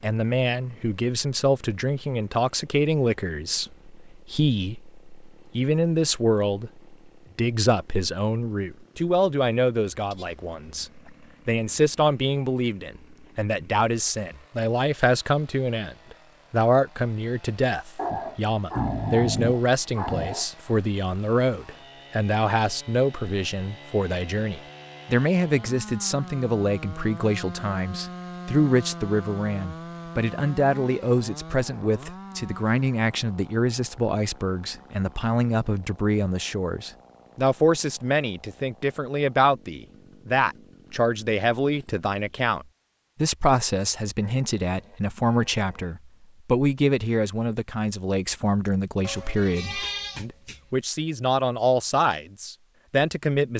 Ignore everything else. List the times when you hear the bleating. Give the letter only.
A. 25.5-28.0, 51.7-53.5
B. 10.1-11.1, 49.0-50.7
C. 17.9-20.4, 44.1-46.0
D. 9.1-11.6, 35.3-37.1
B.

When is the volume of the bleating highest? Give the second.
50 s.